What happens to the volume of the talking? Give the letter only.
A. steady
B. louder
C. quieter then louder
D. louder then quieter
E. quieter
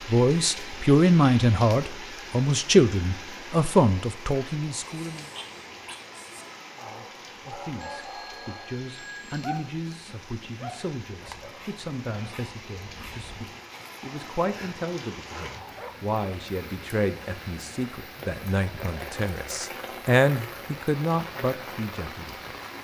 C.